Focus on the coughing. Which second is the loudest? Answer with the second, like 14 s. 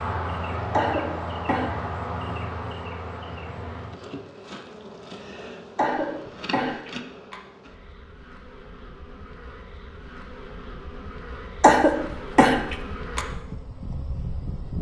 12 s.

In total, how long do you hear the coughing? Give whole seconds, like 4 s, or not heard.
4 s.